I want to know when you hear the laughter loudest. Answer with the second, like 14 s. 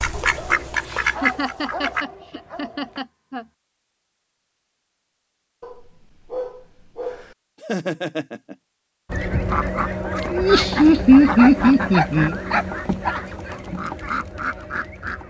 11 s.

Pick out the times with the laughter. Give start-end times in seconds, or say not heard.
1.2-3.5, 7.6-8.6, 10.3-12.3.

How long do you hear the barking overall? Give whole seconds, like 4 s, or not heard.
7 s.